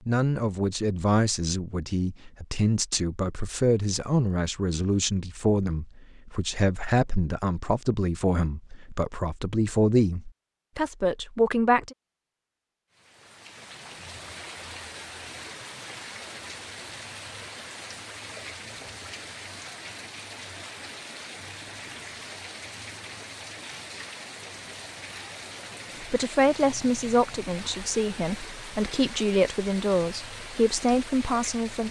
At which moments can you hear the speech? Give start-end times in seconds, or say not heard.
0.1-11.9, 26.0-31.8.